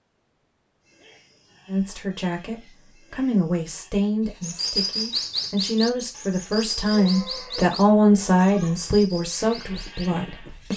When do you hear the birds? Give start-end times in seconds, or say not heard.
4.4-10.7.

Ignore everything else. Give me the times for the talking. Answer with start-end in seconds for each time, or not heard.
1.6-10.7.